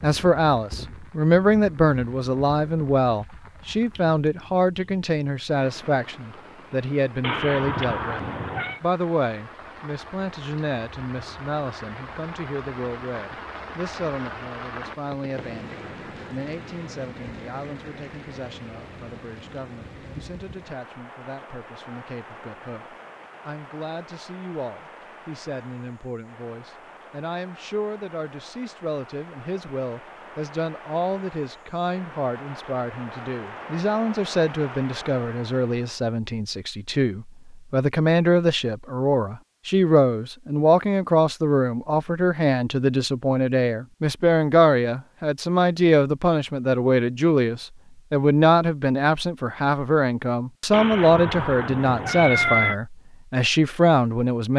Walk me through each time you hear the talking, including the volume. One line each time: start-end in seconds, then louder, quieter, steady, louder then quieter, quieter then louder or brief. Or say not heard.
0.0-54.5 quieter then louder.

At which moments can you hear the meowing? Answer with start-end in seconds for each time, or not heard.
7.2-8.8, 50.7-52.8.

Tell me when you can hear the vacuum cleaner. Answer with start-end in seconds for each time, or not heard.
not heard.